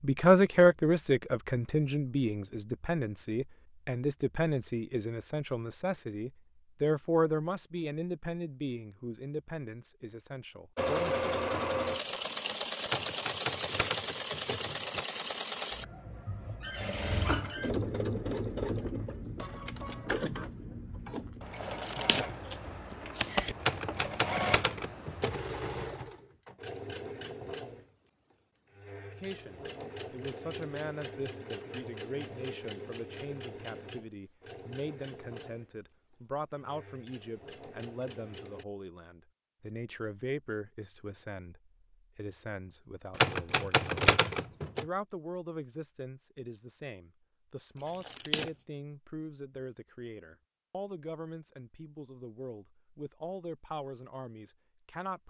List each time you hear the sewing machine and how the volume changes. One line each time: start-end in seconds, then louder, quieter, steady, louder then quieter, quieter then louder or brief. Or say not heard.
10.8-38.6 quieter.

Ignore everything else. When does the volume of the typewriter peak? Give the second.
44 s.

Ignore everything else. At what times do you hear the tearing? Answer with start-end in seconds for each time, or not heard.
21.6-23.6, 47.8-48.5.